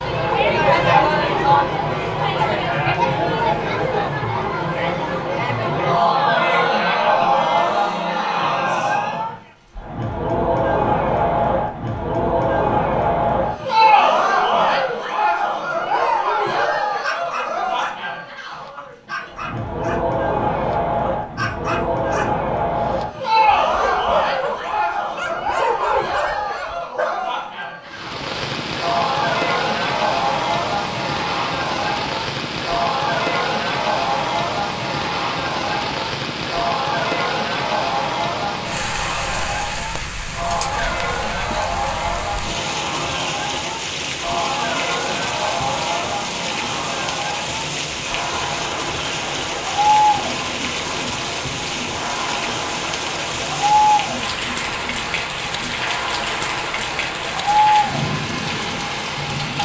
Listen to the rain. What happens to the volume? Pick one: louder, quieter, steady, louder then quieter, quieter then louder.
steady.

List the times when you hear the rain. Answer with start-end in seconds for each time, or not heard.
27.9-59.6.